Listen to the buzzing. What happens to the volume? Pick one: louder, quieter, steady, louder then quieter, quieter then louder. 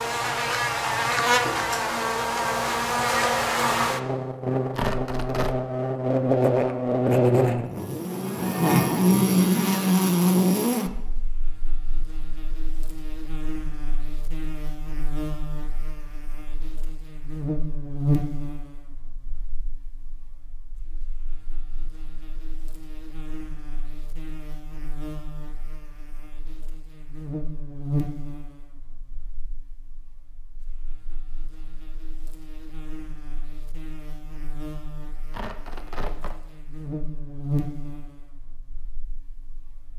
quieter.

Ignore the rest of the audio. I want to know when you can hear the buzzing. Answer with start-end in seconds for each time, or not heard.
0.0-39.9.